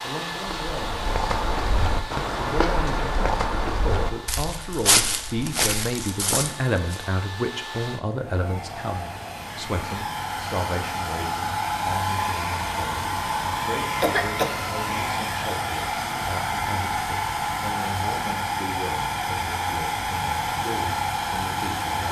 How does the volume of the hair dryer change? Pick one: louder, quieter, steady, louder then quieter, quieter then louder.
louder.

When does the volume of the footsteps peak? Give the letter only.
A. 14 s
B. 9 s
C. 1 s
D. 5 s
D.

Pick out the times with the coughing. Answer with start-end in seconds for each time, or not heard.
14.0-14.6.